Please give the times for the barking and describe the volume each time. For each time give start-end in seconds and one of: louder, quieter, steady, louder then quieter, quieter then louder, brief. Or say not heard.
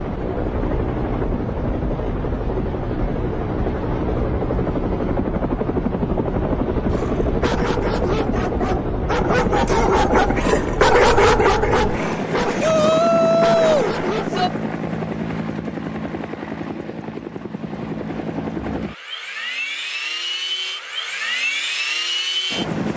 6.8-14.6 louder then quieter.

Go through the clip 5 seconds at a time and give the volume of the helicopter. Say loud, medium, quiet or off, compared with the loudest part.
loud, loud, loud, medium, loud.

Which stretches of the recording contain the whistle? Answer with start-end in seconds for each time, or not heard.
not heard.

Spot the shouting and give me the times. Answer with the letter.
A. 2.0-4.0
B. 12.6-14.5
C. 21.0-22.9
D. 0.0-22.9
B.